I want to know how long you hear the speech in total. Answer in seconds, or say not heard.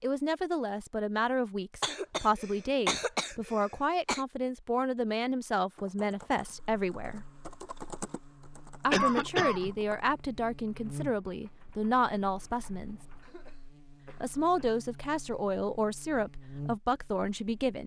15 s.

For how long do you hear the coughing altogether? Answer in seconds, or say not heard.
5 s.